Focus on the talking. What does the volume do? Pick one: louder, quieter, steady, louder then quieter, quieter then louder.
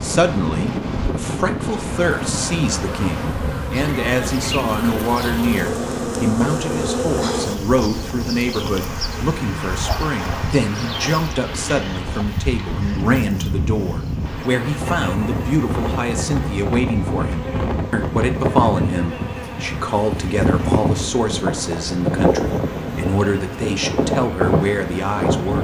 steady.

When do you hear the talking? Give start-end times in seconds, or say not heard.
0.0-25.5.